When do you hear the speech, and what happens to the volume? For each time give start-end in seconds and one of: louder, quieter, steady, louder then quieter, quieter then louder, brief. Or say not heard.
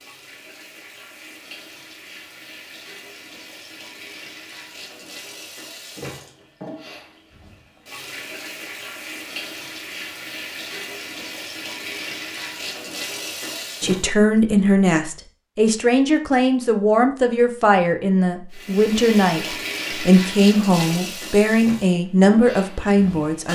13.8-23.5 steady.